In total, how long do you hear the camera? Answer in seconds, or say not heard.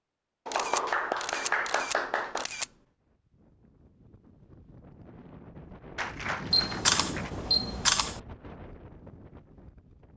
4 s.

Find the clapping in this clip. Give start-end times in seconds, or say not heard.
0.5-2.5, 6.0-7.3.